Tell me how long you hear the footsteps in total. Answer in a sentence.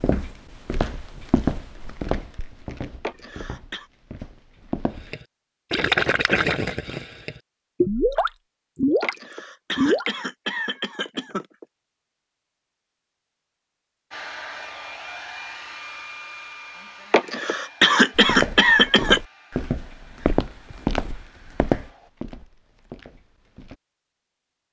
You can hear the footsteps for 11 seconds altogether.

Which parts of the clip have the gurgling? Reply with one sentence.
The gurgling can be heard from 5.1 to 10.2 s.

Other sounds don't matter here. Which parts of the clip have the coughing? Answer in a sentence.
You can hear the coughing from 3.0 to 3.9 s, from 9.0 to 11.7 s and from 17.1 to 19.2 s.